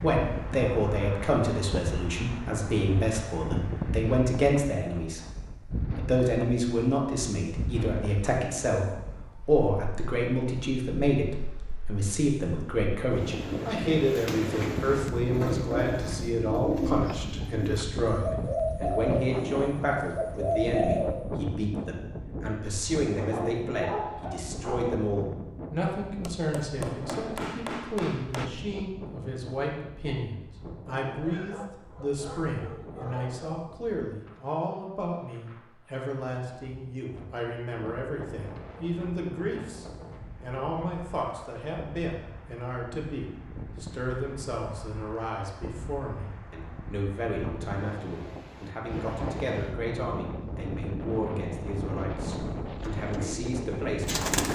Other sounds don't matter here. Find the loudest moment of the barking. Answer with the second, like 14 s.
24 s.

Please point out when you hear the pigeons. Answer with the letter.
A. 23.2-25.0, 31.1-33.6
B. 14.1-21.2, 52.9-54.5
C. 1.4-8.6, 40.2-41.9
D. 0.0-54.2
B.